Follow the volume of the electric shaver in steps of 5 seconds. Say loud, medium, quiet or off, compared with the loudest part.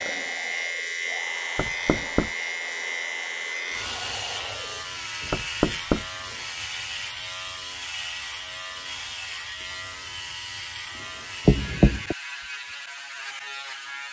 loud, loud, medium.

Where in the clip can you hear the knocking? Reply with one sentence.
You can hear the knocking from 1.6 to 2.3 s, from 5.3 to 6.0 s and from 11.4 to 12.2 s.